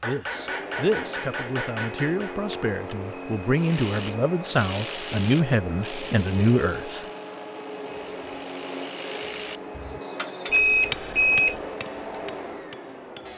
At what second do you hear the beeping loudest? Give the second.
11 s.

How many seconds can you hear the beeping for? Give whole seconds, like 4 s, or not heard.
3 s.